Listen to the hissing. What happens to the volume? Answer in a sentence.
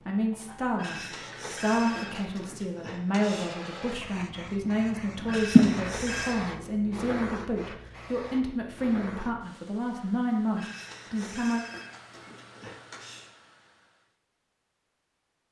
The volume of the hissing goes up, then down.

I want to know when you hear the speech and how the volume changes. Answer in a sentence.
The speech can be heard from 0.1 to 11.7 s, at a steady volume.